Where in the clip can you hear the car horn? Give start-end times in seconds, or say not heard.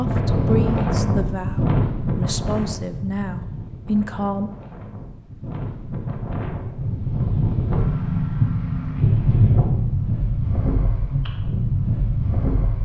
not heard.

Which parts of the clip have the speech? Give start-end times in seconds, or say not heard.
0.0-4.5.